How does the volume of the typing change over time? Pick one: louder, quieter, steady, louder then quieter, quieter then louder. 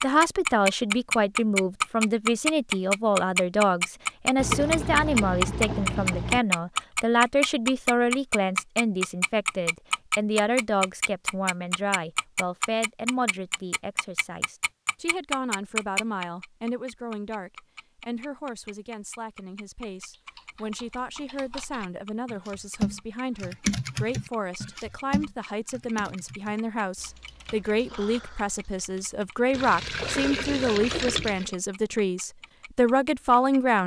louder then quieter.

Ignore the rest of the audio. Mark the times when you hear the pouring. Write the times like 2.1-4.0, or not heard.
4.3-6.4, 29.5-31.6.